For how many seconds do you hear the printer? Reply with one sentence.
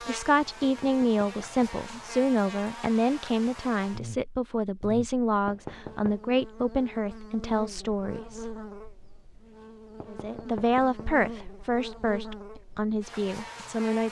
You can't hear the printer here.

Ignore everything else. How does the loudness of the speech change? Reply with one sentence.
The volume of the speech stays about the same.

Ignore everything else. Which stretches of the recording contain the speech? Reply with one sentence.
The speech can be heard from 0.1 to 8.4 s and from 10.1 to 14.0 s.